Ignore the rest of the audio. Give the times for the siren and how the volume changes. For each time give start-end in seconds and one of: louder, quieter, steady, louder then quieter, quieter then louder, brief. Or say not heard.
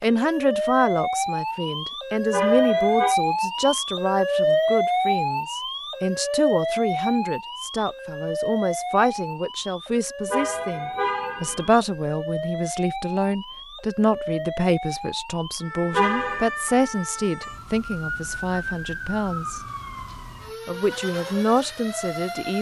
0.0-22.5 quieter.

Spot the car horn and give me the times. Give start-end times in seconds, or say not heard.
2.3-3.1, 10.3-11.8, 15.9-16.5.